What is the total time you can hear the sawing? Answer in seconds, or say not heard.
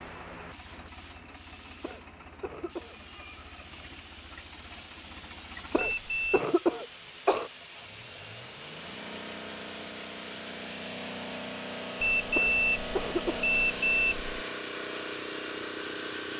not heard.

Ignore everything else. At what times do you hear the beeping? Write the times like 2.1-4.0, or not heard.
5.8-6.4, 12.0-14.3.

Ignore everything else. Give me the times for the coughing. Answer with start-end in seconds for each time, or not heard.
1.8-3.0, 5.7-7.5, 12.3-13.5.